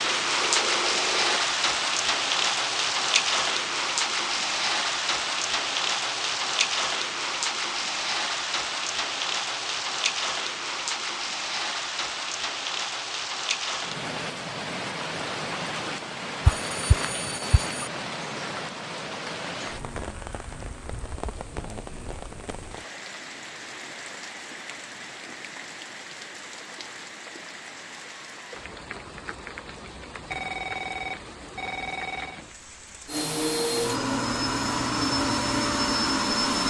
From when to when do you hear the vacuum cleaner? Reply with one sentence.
You can hear the vacuum cleaner from 33.0 to 36.6 s.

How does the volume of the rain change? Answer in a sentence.
The volume of the rain goes down.